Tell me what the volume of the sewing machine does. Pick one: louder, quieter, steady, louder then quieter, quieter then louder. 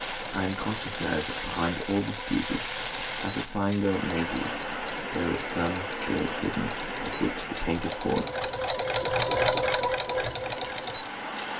louder.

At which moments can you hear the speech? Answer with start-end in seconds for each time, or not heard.
0.1-8.3.